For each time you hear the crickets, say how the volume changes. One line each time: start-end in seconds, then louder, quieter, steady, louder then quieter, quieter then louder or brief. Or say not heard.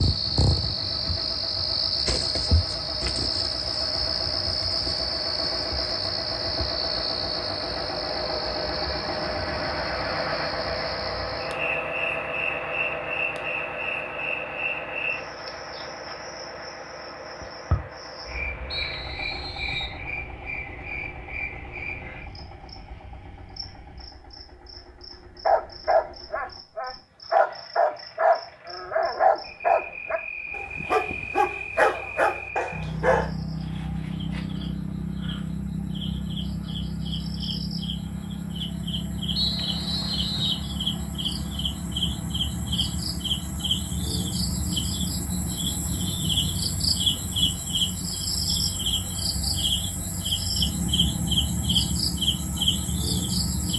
0.0-53.7 quieter then louder.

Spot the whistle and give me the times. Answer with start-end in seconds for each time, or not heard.
18.7-20.0, 39.4-40.6.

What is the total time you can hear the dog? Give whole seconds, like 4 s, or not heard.
8 s.